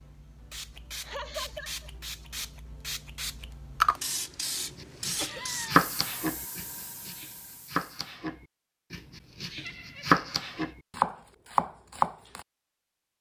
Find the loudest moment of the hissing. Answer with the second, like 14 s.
4 s.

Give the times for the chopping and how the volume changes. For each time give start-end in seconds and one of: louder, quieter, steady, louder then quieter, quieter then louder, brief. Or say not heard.
4.8-12.4 quieter then louder.